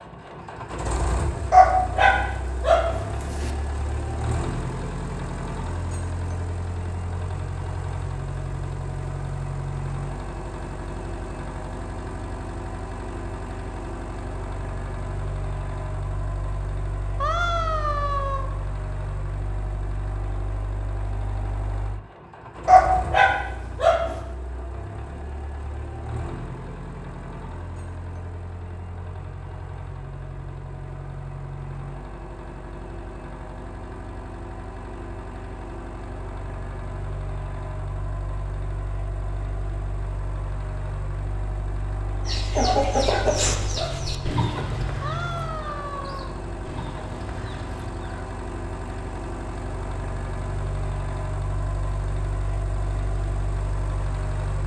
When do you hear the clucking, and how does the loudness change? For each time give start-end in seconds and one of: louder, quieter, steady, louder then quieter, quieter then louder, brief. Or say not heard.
42.2-48.4 quieter.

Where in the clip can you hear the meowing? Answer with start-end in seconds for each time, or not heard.
17.2-18.5, 45.0-46.3.